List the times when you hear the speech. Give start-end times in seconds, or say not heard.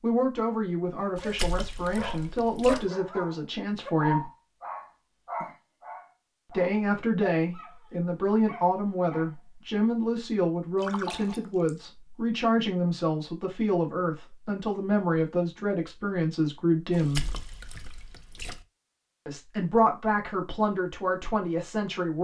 0.0-4.3, 6.5-17.2, 19.2-22.1.